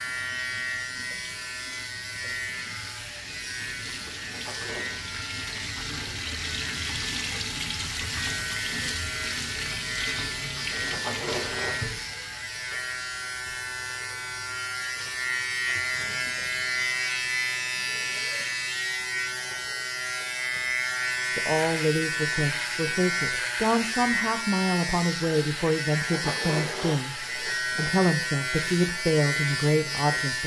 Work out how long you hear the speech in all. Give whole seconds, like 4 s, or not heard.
9 s.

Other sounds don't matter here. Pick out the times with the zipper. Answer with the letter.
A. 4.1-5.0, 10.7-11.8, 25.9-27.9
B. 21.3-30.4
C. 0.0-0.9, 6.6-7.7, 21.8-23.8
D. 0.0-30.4
A.